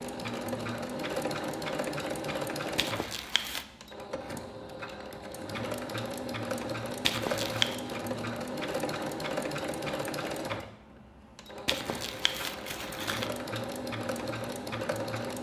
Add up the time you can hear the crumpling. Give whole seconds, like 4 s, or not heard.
3 s.